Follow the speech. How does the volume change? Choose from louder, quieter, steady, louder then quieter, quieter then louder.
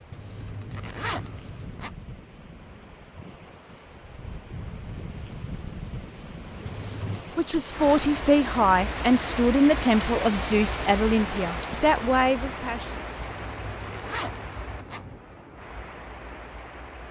steady.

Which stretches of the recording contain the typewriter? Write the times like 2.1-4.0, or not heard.
not heard.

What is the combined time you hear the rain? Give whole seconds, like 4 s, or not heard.
17 s.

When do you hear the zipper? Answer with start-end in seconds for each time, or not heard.
0.1-1.9, 6.7-7.2, 13.2-15.2.